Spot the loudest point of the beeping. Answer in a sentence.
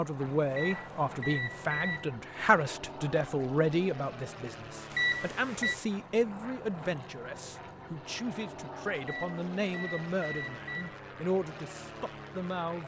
The volume of the beeping peaks at 5 seconds.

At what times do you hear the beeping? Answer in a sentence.
The beeping can be heard from 0.5 to 2.1 s, from 4.9 to 5.8 s and from 9.0 to 11.0 s.